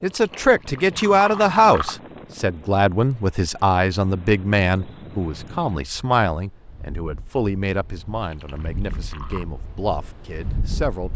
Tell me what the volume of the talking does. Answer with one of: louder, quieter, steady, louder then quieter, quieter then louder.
quieter.